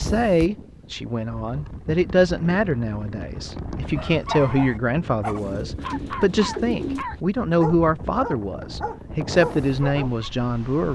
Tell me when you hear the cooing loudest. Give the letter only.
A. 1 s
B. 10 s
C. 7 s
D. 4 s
C.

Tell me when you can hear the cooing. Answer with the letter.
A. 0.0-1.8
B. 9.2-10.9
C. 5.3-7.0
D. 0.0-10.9
C.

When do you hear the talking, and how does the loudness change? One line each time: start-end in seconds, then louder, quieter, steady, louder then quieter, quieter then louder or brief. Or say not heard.
0.0-10.9 steady.